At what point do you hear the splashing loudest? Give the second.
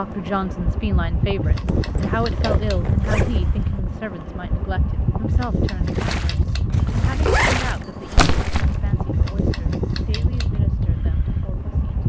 8 s.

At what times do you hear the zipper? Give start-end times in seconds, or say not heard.
1.6-3.8, 6.7-8.6.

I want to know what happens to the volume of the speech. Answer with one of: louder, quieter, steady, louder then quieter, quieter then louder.
quieter.